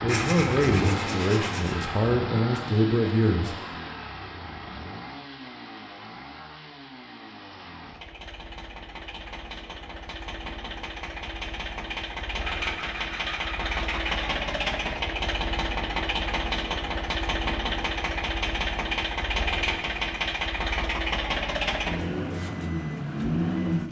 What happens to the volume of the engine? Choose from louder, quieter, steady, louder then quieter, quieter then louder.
quieter then louder.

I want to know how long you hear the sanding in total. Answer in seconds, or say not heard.
4 s.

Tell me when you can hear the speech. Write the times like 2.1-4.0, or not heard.
0.0-3.5.